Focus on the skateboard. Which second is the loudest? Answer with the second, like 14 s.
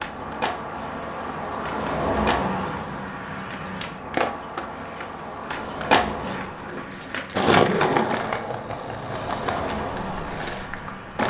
8 s.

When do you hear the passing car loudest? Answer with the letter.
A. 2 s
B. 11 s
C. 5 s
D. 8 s
A.